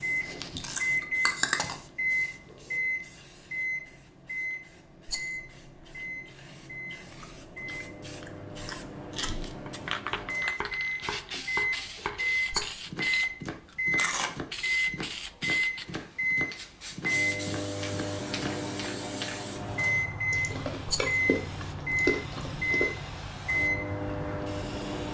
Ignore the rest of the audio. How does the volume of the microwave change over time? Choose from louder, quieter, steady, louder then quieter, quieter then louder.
quieter then louder.